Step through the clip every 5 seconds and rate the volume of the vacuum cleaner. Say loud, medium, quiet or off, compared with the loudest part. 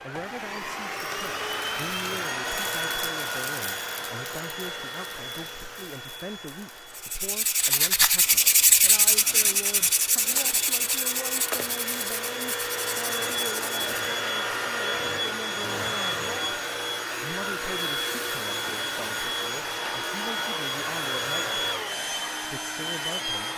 loud, quiet, loud, loud, loud.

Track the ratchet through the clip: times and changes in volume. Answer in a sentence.
You can't hear the ratchet here.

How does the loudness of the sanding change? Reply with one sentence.
The loudness of the sanding goes down.